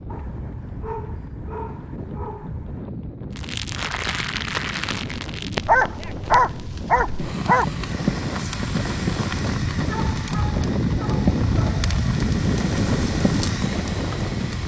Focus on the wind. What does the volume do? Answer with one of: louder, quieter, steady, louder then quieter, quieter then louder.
louder.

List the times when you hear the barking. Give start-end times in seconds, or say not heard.
0.1-2.9, 5.7-7.7, 9.8-12.2.